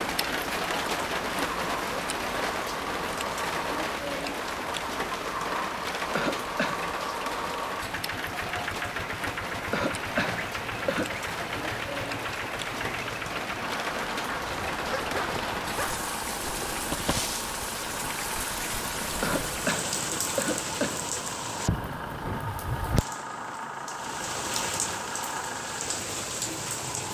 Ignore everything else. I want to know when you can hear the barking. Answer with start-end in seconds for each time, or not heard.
14.2-16.1.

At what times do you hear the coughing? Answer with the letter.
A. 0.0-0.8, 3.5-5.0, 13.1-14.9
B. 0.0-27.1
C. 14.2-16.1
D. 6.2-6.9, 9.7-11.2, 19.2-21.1
D.